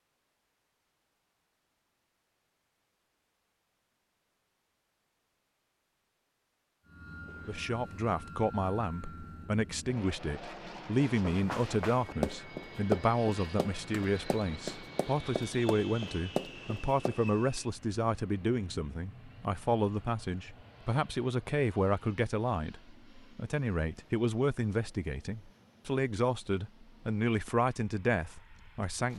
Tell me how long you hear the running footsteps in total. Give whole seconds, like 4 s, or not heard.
6 s.